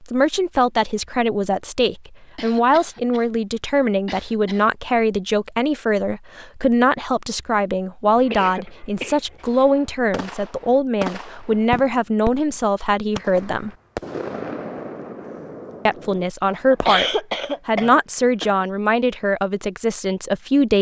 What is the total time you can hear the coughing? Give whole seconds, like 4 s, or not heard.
5 s.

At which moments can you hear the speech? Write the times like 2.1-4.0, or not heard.
0.0-13.7, 15.8-20.7.